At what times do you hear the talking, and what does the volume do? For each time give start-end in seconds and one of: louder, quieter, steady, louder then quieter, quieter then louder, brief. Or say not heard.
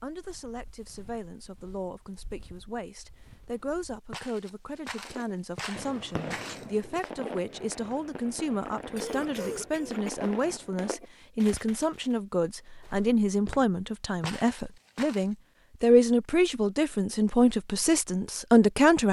0.0-19.0 louder.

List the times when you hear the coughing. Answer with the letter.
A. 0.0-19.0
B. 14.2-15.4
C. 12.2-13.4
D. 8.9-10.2
D.